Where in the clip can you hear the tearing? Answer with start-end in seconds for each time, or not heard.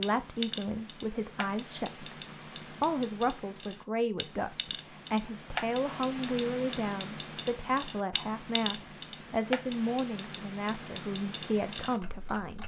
not heard.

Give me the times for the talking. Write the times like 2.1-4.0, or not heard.
0.0-12.6.